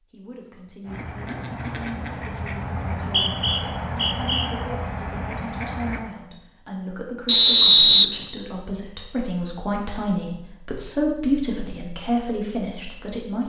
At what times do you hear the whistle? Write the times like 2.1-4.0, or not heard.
3.0-4.5, 7.2-8.1.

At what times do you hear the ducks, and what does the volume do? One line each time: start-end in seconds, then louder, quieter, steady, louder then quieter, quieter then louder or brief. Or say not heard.
0.8-6.0 steady.